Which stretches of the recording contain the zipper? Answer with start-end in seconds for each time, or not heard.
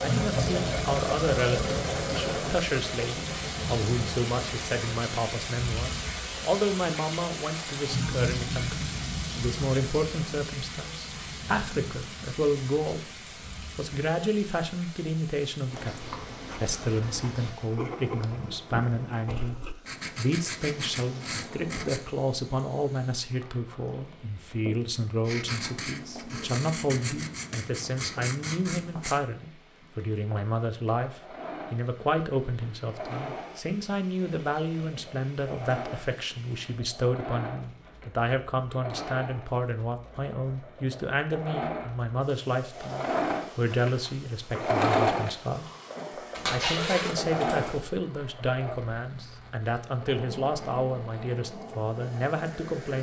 46.3-47.8.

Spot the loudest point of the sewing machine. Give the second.
45 s.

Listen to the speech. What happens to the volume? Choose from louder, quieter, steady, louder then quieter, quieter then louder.
steady.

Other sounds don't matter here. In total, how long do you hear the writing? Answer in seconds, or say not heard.
10 s.